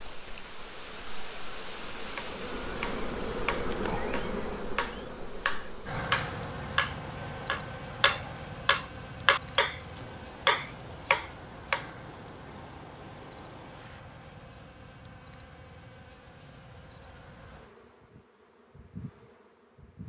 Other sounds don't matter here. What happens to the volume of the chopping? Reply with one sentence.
The volume of the chopping goes up.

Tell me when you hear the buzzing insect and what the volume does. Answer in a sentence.
The buzzing insect can be heard from 0.0 to 20.0 s, getting quieter.